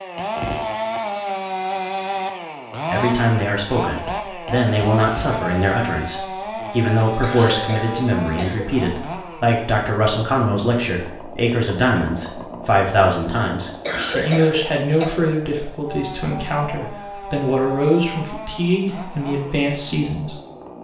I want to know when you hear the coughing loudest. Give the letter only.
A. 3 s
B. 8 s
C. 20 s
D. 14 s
D.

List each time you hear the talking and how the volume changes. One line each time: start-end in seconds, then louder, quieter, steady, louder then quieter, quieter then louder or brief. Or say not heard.
2.9-20.4 steady.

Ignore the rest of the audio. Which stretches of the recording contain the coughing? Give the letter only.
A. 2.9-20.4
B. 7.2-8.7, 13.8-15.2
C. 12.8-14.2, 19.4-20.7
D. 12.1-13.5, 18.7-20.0
B.